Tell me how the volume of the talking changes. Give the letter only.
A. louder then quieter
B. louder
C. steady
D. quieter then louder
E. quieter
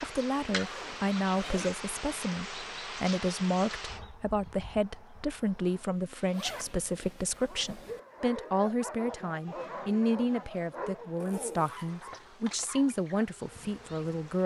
C.